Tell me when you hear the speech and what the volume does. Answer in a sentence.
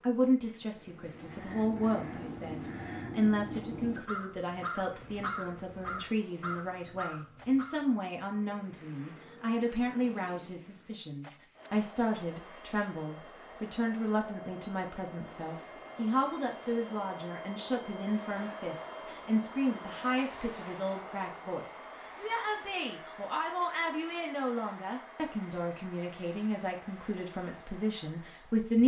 The speech can be heard from 0.0 to 28.8 s, at a steady volume.